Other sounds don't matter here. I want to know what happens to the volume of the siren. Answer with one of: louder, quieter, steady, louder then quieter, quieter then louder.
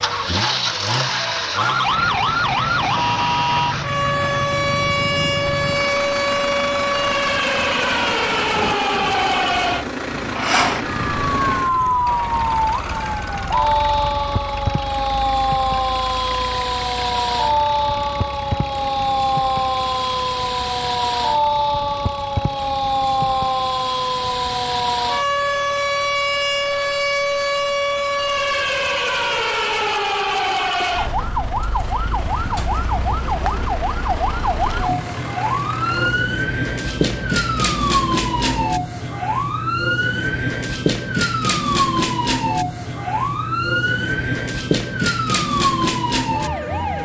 steady.